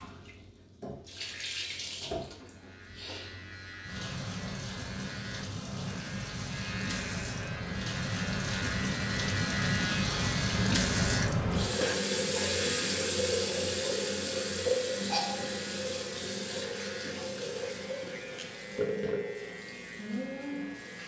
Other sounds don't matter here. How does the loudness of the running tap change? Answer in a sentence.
The loudness of the running tap goes up, then down.